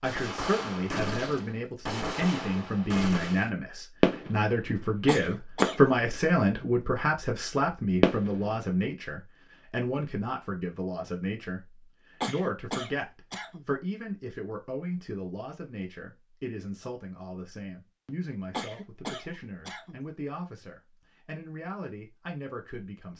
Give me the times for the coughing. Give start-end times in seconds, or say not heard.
5.0-5.9, 12.2-13.7, 18.5-20.0.